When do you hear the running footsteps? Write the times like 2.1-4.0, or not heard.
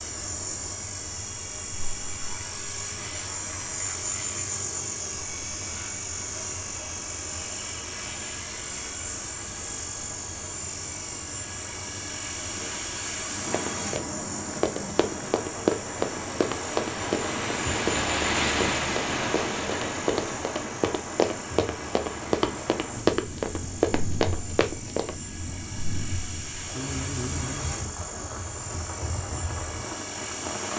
13.5-25.1.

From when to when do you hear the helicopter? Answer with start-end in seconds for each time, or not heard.
0.0-30.7.